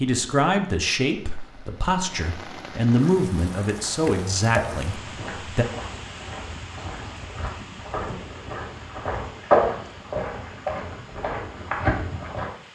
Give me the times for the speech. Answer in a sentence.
You can hear the speech from 0.0 to 5.7 s.